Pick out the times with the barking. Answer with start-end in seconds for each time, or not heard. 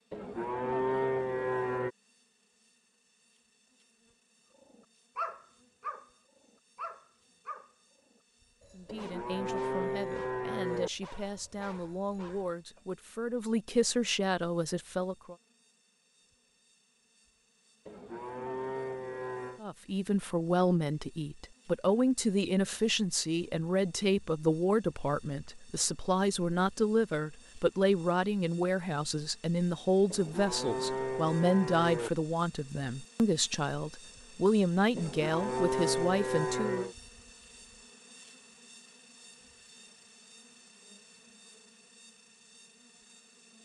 4.7-6.1, 6.8-12.8.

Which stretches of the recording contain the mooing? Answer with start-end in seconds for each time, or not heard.
0.1-1.9, 8.8-10.9, 17.9-19.6, 30.1-32.1, 35.0-37.0.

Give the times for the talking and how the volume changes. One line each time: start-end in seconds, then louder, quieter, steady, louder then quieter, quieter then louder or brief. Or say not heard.
8.8-15.3 louder
19.6-36.9 steady.